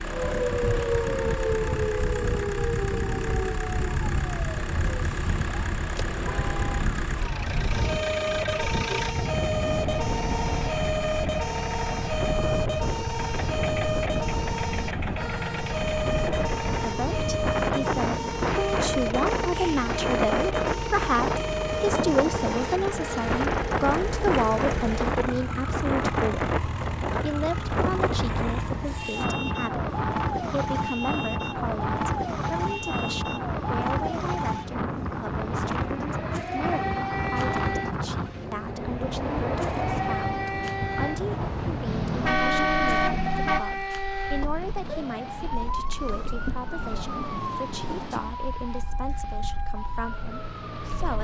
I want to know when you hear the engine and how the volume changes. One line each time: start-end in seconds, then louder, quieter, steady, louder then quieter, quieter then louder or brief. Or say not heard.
0.0-29.2 steady.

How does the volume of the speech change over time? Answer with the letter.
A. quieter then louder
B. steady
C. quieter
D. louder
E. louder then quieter
C.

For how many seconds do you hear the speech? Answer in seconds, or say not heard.
34 s.